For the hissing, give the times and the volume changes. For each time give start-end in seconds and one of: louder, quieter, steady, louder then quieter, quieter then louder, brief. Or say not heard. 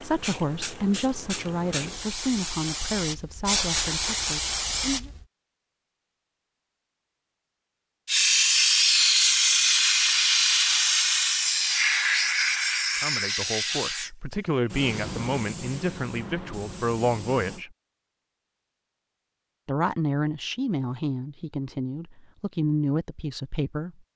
0.0-5.2 louder
8.1-17.6 quieter.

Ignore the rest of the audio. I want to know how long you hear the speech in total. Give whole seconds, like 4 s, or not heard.
14 s.